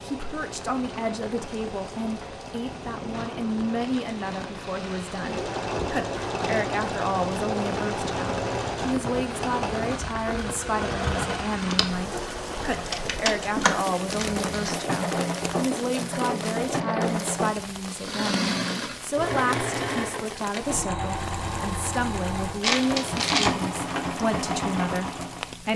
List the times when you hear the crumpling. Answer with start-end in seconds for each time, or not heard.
3.1-5.3, 14.1-14.8, 22.6-23.6.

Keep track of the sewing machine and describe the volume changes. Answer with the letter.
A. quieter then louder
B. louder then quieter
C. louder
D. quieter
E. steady
C.